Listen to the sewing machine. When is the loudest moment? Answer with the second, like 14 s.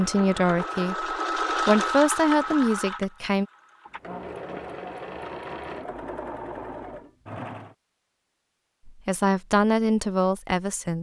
2 s.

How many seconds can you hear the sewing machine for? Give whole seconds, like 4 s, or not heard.
8 s.